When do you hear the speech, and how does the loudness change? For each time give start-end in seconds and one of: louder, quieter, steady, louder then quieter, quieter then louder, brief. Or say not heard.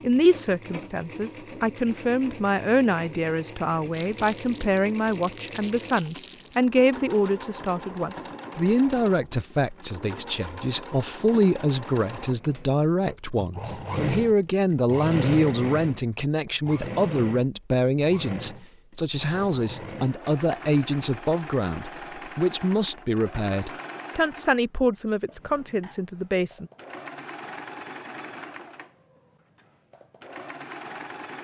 0.0-26.7 steady.